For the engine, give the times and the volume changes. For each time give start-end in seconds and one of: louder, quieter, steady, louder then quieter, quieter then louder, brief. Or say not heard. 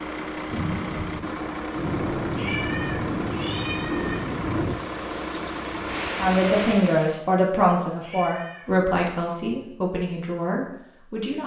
0.0-6.5 steady.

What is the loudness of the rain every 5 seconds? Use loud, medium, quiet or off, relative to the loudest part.
loud, loud, off.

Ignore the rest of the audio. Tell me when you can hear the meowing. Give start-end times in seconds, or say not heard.
2.4-4.2, 8.0-8.8.